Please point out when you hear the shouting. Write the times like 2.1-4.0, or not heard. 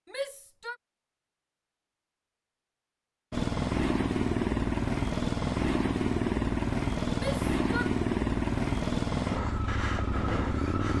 0.1-0.8, 7.2-8.0.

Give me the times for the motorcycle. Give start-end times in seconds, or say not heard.
3.3-10.9.